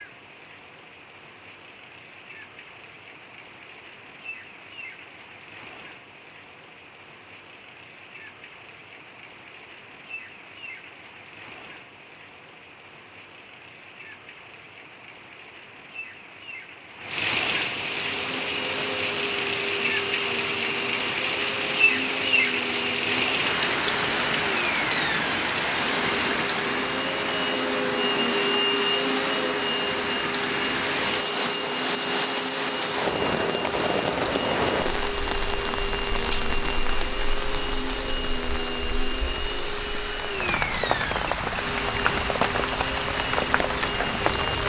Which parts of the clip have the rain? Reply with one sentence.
You can hear the rain from 0.0 to 44.6 s.